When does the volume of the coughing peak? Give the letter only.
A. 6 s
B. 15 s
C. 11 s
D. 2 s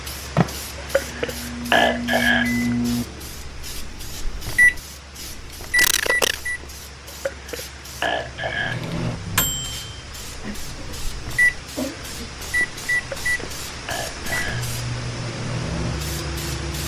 A.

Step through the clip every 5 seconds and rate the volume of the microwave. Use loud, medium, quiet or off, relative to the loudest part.
loud, loud, loud, medium.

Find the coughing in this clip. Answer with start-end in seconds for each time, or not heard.
5.8-6.4, 10.4-12.2.